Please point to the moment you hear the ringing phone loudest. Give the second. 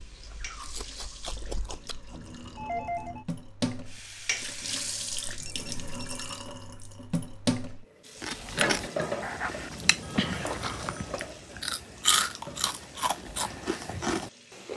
3 s.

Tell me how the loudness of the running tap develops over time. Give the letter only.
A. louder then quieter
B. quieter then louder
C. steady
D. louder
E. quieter
A.